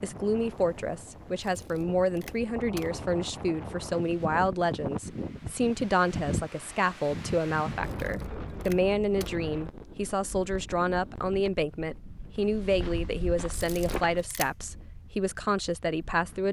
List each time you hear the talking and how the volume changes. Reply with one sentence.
You can hear the talking from 0.0 to 16.4 s, at a steady volume.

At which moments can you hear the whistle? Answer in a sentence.
The whistle can't be heard in this clip.